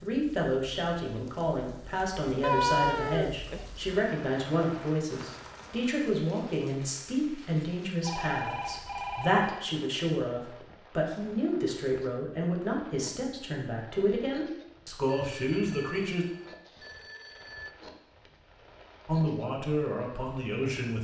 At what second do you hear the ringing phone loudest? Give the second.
3 s.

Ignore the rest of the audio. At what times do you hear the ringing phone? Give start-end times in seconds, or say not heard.
2.4-3.6, 8.1-9.4, 15.1-17.8.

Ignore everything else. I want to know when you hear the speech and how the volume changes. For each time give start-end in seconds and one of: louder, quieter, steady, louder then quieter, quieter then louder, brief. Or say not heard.
0.0-16.2 steady
19.1-20.9 brief.